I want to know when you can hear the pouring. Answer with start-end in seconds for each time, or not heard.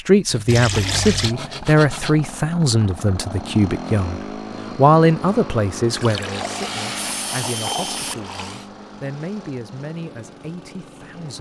0.5-1.4, 5.9-8.6.